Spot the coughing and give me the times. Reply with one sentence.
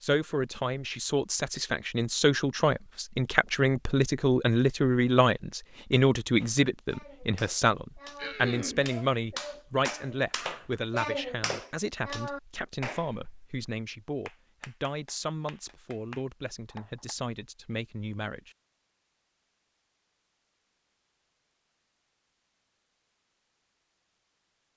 You can hear the coughing from 8.2 to 8.8 s.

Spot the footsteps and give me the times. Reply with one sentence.
You can't hear the footsteps here.